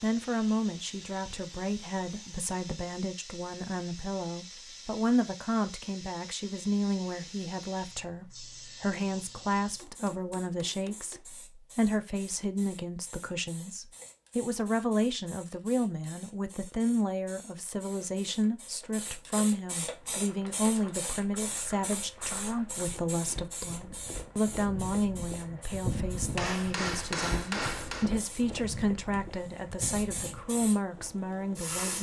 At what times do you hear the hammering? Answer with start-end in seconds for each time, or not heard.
9.6-11.2, 26.4-28.1.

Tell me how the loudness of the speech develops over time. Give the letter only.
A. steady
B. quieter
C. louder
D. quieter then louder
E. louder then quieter
A.